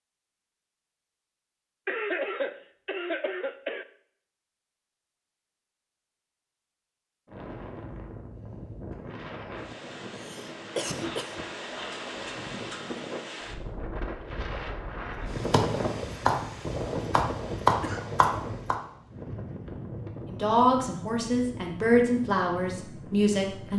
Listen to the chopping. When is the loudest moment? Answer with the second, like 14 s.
18 s.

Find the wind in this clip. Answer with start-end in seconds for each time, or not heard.
7.2-23.7.